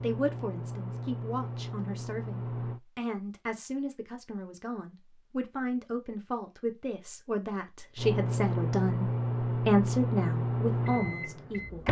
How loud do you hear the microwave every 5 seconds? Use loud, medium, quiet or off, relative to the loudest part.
medium, loud, loud.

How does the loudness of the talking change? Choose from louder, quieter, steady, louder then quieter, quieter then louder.
louder.